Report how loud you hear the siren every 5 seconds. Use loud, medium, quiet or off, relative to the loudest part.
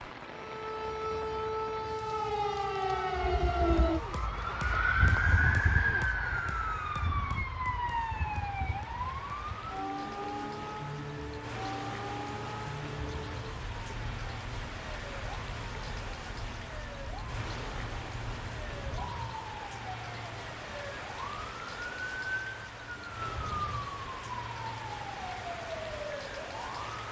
loud, loud, medium, quiet, medium, medium.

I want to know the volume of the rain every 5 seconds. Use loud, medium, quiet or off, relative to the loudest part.
medium, medium, loud, loud, loud, loud.